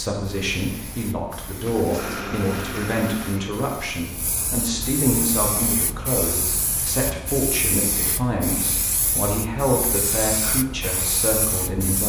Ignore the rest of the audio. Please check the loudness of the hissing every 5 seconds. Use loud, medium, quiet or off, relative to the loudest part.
medium, loud, loud.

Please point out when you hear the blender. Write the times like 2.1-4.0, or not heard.
1.6-3.5.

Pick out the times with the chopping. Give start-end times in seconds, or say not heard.
not heard.